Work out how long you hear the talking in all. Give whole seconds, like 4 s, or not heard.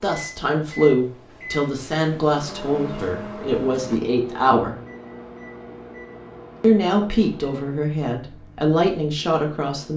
8 s.